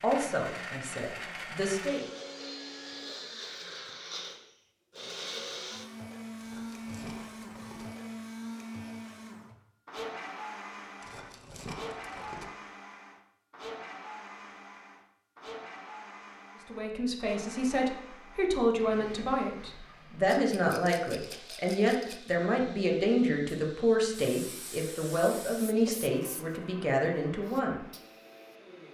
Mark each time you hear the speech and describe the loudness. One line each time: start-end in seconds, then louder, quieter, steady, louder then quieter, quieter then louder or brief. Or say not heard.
0.0-2.0 brief
16.6-27.8 steady.